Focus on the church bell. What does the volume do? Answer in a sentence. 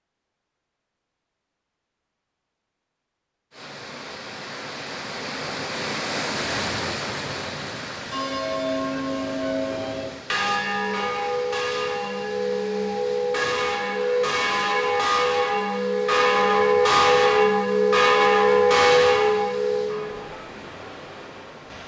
The volume of the church bell goes up.